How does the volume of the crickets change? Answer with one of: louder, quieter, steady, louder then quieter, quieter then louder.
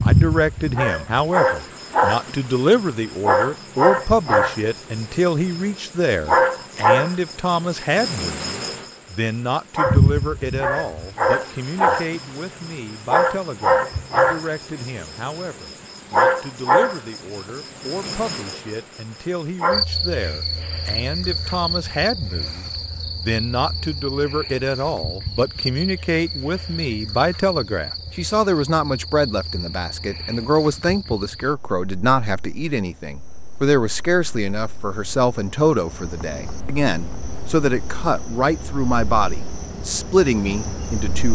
quieter.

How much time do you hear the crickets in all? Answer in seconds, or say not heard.
41 s.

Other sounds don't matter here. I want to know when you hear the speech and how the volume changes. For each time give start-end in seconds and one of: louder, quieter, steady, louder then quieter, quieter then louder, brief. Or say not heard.
0.0-41.3 quieter then louder.